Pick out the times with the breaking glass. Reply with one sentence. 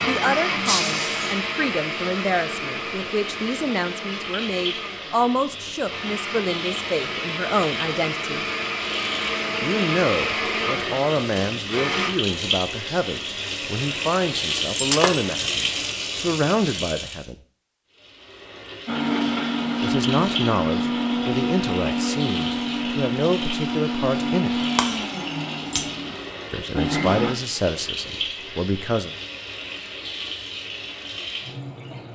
You can hear the breaking glass from 0.7 to 1.4 s, from 14.8 to 15.2 s and from 24.8 to 25.9 s.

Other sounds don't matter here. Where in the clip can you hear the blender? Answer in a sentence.
You can hear the blender from 0.0 to 12.1 s and from 18.9 to 27.4 s.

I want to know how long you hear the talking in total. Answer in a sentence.
You can hear the talking for 24 seconds altogether.